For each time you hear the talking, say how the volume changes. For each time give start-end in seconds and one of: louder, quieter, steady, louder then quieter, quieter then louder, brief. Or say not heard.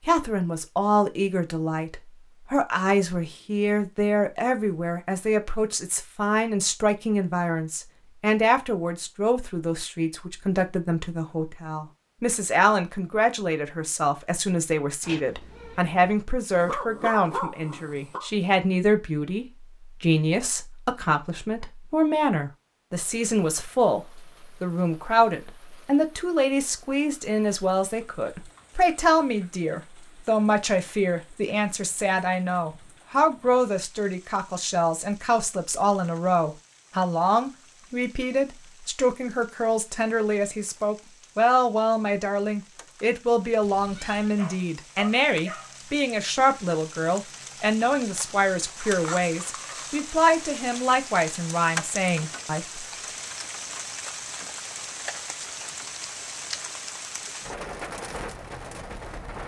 0.1-52.9 steady.